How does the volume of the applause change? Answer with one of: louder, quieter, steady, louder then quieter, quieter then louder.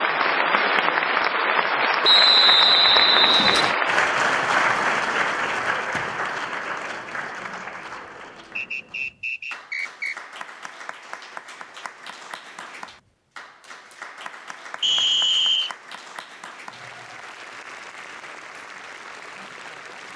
quieter.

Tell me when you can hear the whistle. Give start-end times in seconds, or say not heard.
2.0-3.8, 8.6-10.2, 14.8-15.7.